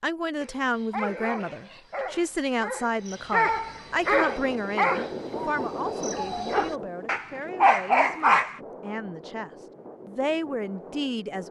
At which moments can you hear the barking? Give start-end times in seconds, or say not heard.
0.4-8.6.